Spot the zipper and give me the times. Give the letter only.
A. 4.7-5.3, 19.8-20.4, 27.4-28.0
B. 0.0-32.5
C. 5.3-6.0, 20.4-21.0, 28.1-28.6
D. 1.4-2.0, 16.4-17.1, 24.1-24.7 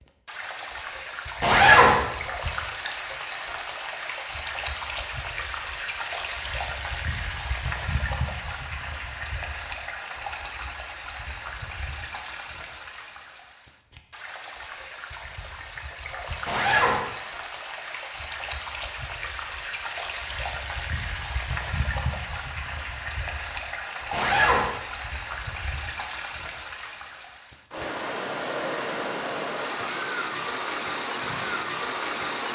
D.